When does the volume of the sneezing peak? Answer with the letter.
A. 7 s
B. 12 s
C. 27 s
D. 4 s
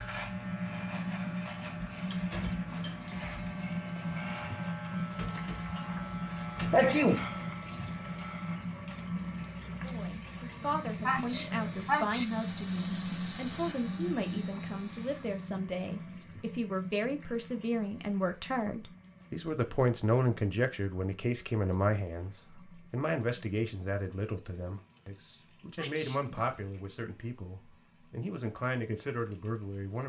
A.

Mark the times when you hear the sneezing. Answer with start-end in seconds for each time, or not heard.
6.7-7.2, 11.1-12.2, 25.8-26.8.